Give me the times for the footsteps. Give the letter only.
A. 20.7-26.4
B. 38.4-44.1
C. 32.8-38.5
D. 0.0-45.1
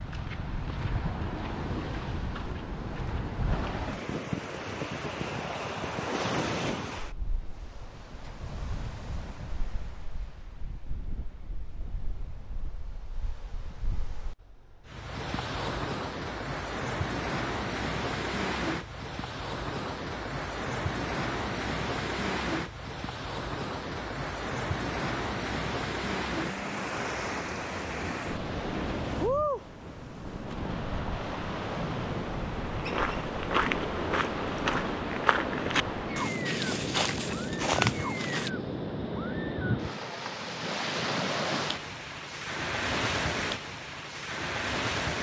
C.